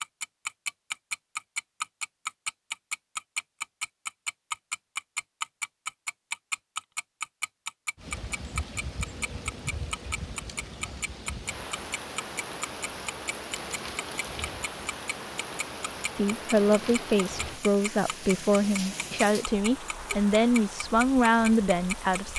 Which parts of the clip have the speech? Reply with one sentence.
The speech can be heard from 16.1 to 22.3 s.